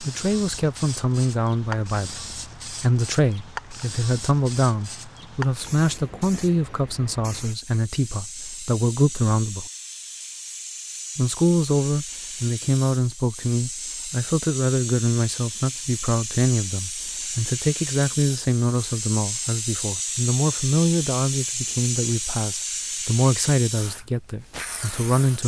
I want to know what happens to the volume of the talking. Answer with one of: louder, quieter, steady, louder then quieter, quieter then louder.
steady.